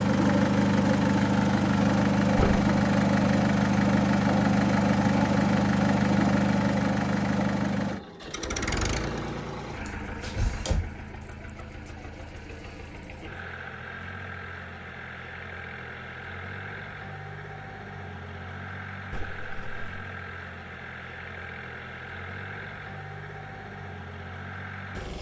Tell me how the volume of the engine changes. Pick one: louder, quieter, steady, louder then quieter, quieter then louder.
quieter.